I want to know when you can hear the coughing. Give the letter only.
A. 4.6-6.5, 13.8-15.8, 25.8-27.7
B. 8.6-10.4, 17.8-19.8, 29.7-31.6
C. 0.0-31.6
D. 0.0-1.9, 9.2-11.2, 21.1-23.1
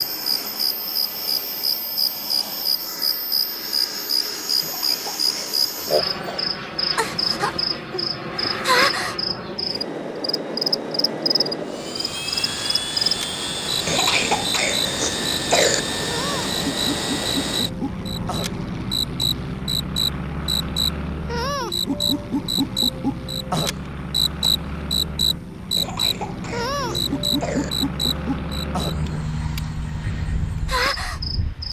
A.